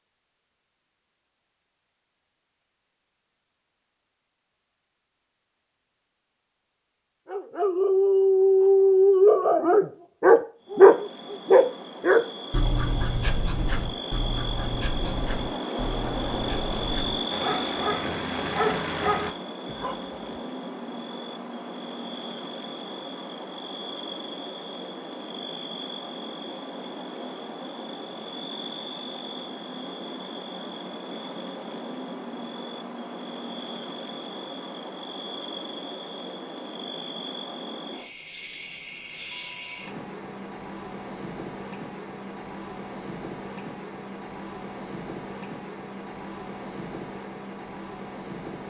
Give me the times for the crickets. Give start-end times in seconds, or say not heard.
10.6-48.6.